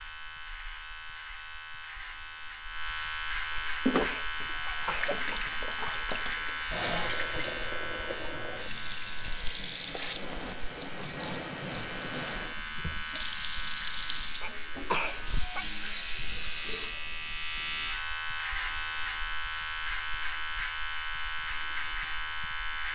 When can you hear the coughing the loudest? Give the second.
15 s.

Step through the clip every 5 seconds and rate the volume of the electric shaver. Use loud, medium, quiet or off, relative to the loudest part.
loud, loud, medium, loud, loud.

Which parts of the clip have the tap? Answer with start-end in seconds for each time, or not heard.
3.9-16.9.